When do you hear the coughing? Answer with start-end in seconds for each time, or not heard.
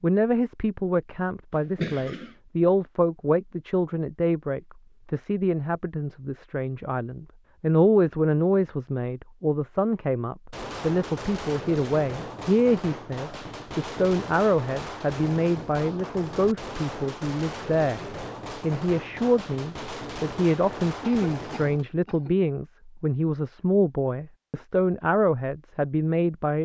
1.6-2.4, 21.0-22.4.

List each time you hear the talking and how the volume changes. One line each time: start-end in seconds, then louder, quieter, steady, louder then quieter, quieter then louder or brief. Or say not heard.
0.0-26.5 steady.